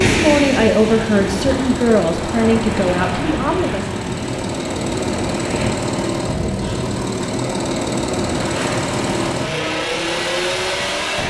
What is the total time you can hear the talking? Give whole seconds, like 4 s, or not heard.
4 s.